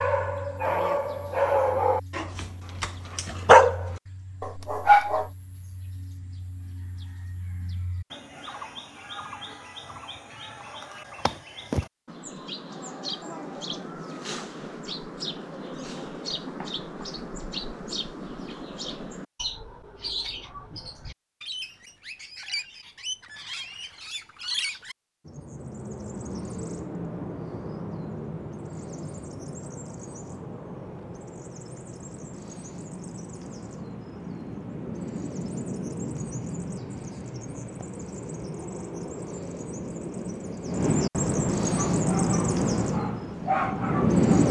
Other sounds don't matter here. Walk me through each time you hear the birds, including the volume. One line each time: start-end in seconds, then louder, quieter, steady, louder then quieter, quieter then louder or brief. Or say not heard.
0.0-44.4 louder.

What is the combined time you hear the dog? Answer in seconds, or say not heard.
8 s.